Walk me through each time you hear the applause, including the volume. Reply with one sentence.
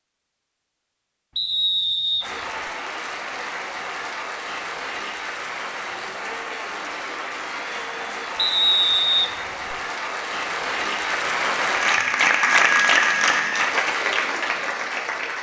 You can hear the applause from 2.2 to 15.3 s, getting louder.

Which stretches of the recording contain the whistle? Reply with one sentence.
You can hear the whistle from 1.4 to 2.2 s and from 8.3 to 9.8 s.